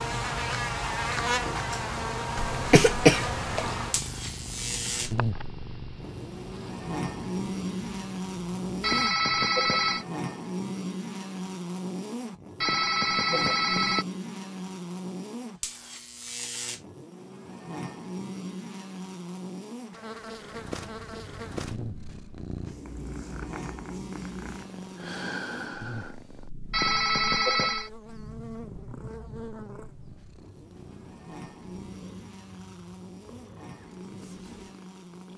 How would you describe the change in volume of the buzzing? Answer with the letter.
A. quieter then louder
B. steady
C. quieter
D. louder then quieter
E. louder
C.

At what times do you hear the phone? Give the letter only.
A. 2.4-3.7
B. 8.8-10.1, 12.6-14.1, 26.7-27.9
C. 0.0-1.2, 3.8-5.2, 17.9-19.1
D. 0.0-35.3
B.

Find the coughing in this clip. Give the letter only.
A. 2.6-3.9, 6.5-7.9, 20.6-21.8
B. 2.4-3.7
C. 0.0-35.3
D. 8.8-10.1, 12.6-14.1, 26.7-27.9
B.